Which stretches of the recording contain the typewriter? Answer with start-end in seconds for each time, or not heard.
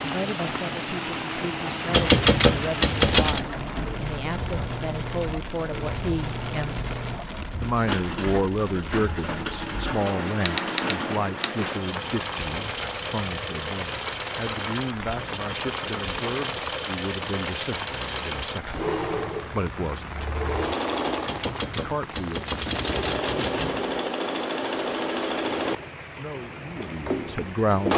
1.9-3.5, 10.3-12.1, 15.1-16.5, 21.2-23.9.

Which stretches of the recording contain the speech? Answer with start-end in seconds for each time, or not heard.
0.0-6.8, 7.6-20.3, 21.8-22.4, 26.1-27.9.